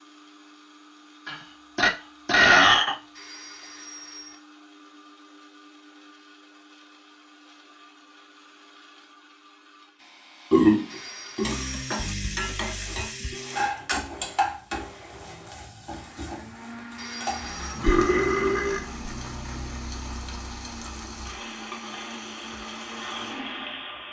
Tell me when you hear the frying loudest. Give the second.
14 s.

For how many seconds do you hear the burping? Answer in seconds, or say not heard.
4 s.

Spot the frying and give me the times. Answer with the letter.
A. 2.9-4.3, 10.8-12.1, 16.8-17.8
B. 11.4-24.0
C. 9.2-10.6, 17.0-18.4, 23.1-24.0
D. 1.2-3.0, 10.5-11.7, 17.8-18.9
B.